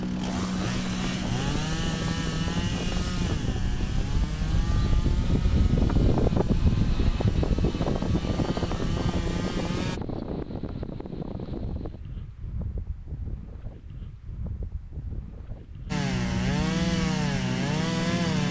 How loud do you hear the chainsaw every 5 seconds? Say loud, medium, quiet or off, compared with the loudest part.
medium, medium, off, loud.